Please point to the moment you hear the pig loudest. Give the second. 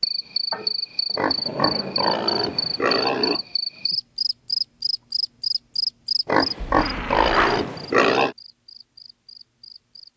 8 s.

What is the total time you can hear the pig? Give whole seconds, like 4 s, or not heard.
4 s.